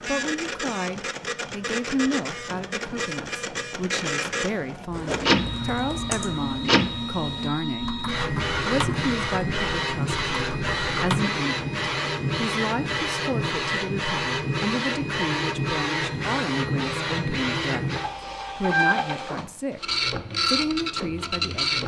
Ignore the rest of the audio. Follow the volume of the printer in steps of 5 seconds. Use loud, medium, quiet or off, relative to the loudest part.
medium, loud, loud, loud, loud.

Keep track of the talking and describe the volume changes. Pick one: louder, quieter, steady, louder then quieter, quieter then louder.
steady.